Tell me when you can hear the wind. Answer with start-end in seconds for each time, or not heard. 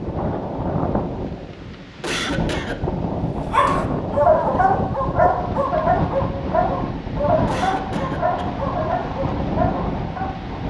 0.0-10.6.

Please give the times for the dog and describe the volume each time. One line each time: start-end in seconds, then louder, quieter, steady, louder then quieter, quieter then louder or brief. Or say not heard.
3.5-10.4 quieter.